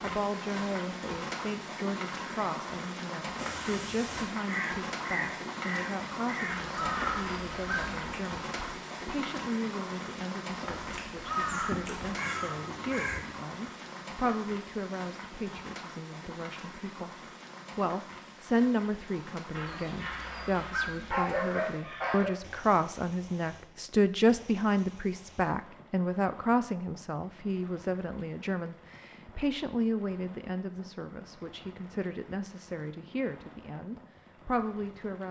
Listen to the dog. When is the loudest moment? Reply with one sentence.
The loudest moment of the dog is at 21 seconds.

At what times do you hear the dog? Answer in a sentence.
You can hear the dog from 6.5 to 8.0 s and from 19.5 to 22.4 s.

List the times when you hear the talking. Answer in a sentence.
You can hear the talking from 0.0 to 17.1 s and from 17.8 to 35.2 s.